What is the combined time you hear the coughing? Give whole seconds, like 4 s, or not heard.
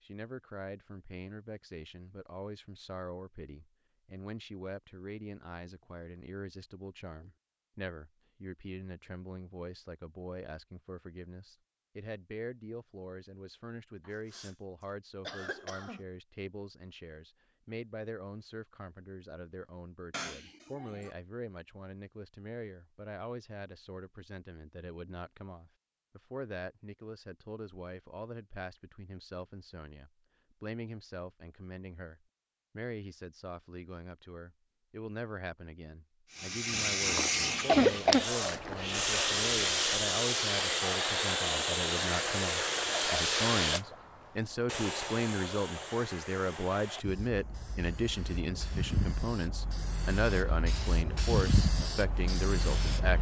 4 s.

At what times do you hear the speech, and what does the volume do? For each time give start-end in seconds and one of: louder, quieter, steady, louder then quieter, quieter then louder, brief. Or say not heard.
0.0-53.1 louder.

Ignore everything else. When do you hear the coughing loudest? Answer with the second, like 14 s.
38 s.